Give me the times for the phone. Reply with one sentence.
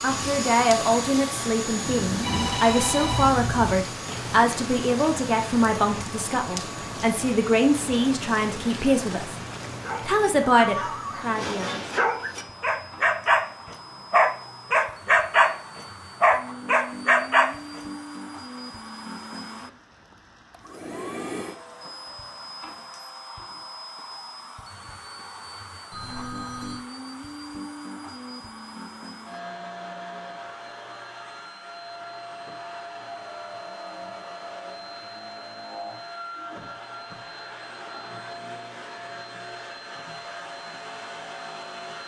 The phone can be heard from 1.8 to 3.8 s and from 25.9 to 26.8 s.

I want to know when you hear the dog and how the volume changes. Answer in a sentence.
You can hear the dog from 9.8 to 15.6 s, getting louder; and briefly from 16.2 to 17.8 s.